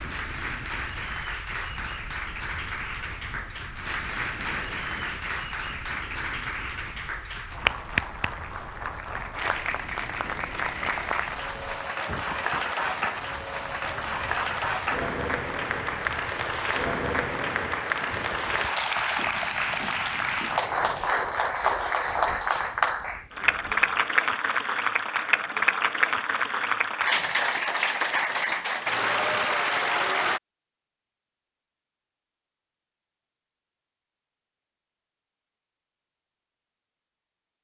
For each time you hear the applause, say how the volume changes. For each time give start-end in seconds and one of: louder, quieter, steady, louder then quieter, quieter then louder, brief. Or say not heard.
0.0-30.4 louder.